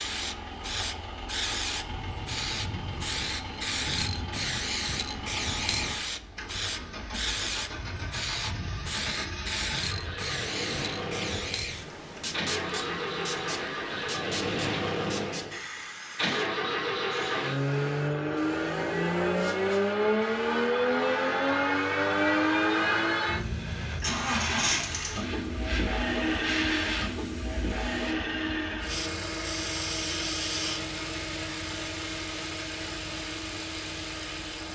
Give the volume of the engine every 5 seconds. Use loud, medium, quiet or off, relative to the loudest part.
quiet, quiet, medium, loud, loud, medium, medium.